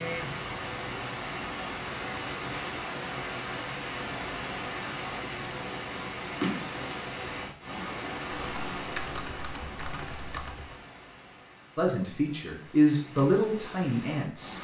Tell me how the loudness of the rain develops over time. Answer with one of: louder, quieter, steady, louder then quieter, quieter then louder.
quieter.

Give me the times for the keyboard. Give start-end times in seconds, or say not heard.
8.3-10.8.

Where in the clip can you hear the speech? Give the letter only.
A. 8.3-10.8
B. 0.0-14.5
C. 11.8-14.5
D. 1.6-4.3
C.